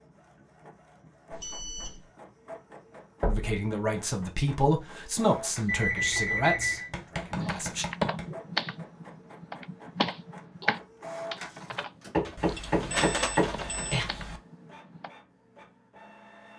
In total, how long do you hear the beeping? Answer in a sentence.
The beeping can be heard for 4 seconds in total.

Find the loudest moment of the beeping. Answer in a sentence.
The volume of the beeping peaks at 6 seconds.